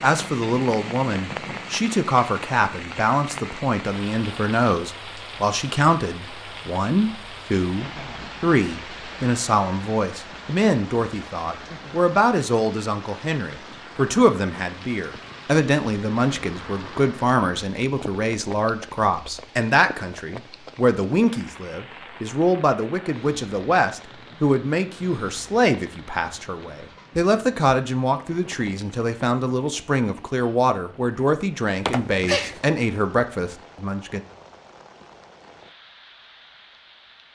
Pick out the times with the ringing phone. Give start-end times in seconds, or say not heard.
31.9-32.6.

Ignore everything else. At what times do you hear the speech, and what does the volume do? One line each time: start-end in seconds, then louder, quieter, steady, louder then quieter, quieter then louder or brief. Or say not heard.
0.0-34.2 steady.